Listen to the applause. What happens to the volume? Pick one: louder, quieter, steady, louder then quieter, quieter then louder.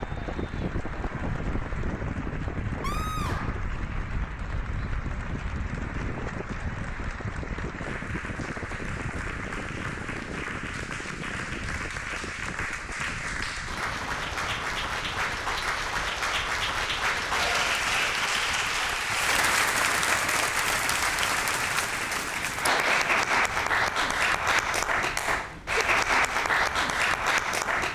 louder.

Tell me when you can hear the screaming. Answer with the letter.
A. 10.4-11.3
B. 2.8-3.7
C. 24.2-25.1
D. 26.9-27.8
B.